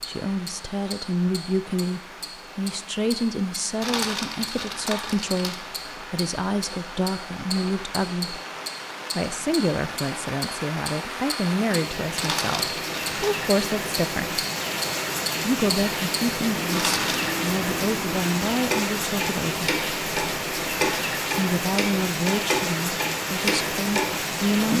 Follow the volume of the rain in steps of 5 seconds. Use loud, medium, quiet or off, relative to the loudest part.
quiet, medium, loud, loud, loud.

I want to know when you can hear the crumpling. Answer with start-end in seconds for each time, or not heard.
3.8-5.8, 12.2-13.3, 16.7-17.2.